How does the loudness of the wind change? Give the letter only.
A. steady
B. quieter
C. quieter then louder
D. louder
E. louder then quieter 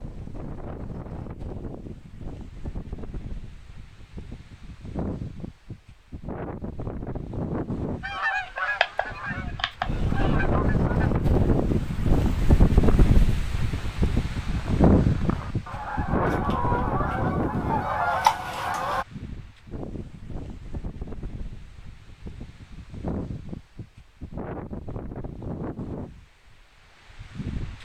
E.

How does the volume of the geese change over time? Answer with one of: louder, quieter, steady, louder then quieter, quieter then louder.
quieter then louder.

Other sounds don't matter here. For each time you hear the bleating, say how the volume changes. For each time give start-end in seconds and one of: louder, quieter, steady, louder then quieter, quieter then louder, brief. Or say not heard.
not heard.